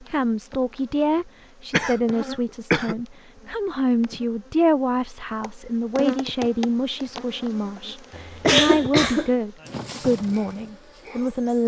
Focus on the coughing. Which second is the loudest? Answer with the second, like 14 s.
9 s.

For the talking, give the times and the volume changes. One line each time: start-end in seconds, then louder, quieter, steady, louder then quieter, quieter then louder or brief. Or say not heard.
0.0-11.6 steady.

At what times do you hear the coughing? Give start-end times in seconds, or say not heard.
1.7-3.0, 8.1-9.3.